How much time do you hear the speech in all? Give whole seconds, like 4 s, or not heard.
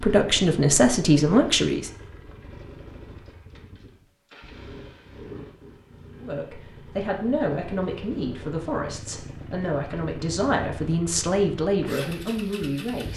9 s.